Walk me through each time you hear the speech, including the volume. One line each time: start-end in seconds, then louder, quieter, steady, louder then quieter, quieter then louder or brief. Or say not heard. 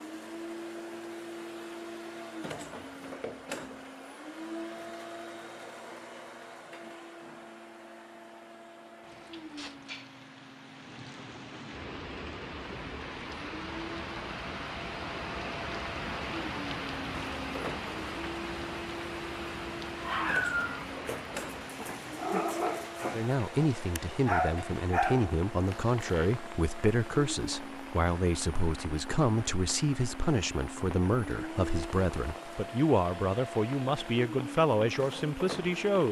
23.1-36.0 steady.